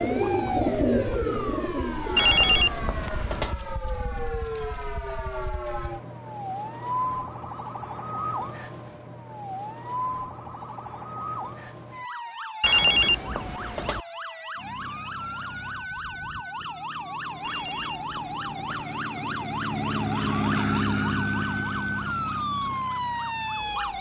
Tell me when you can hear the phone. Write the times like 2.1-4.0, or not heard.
2.1-3.5, 12.6-14.0, 17.4-18.9.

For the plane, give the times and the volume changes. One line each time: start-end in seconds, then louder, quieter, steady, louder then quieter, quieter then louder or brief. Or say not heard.
14.6-23.9 louder then quieter.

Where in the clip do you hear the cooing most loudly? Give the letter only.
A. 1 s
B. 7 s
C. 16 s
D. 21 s
A.